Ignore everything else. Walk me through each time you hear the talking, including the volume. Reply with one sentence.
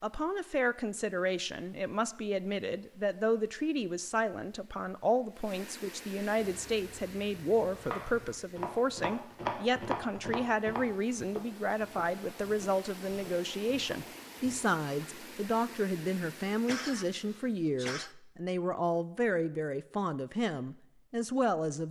You can hear the talking from 0.0 to 21.8 s, at a steady volume.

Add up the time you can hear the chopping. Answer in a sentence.
The chopping can be heard for 8 seconds in total.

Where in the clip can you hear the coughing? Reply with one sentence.
You can hear the coughing from 16.6 to 18.1 s.